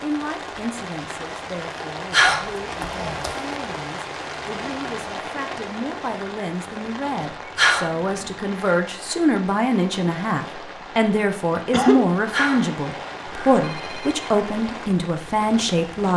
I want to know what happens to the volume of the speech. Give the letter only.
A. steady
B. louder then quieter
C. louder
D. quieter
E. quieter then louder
C.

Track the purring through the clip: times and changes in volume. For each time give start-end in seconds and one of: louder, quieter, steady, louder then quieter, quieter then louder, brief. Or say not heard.
not heard.